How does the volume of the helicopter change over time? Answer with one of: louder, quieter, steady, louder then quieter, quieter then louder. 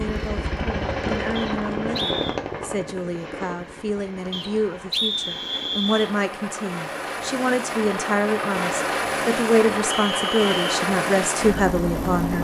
quieter then louder.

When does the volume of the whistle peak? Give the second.
5 s.